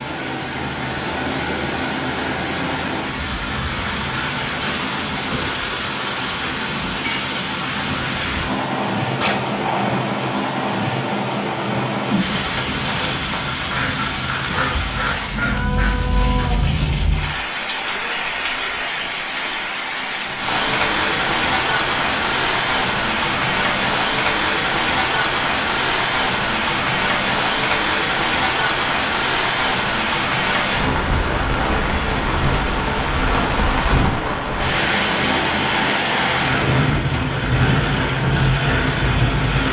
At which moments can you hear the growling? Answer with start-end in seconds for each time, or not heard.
9.2-10.1.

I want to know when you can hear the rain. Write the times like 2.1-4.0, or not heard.
0.0-39.6.